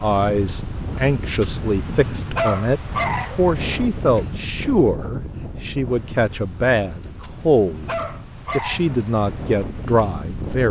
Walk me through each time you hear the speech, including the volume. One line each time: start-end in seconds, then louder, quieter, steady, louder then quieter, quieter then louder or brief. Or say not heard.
0.0-7.9 steady
8.6-10.6 brief.